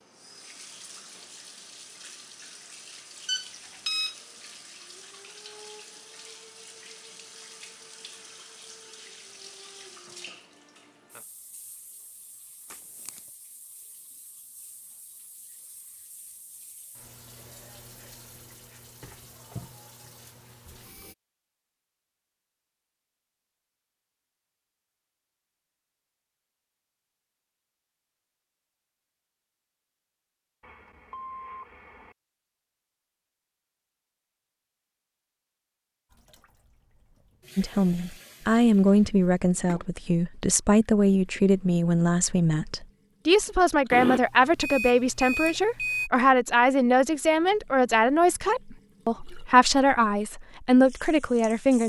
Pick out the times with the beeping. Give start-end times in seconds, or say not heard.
3.2-4.2, 30.6-32.1, 43.9-46.1.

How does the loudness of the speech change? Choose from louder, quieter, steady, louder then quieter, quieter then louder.
steady.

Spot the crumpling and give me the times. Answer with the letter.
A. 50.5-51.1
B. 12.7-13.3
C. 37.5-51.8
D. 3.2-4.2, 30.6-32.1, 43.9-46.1
B.